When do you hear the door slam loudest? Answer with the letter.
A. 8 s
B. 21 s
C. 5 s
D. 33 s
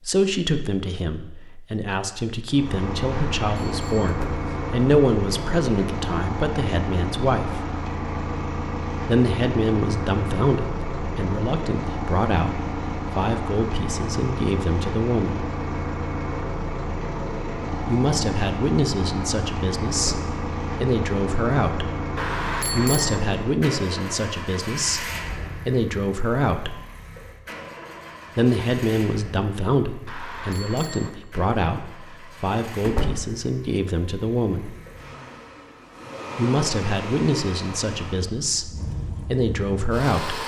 D.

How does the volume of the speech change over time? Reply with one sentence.
The volume of the speech stays about the same.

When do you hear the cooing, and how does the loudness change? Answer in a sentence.
You can't hear the cooing here.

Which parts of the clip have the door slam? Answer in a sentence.
You can hear the door slam from 4.0 to 4.5 s, from 19.9 to 20.4 s and from 32.8 to 33.2 s.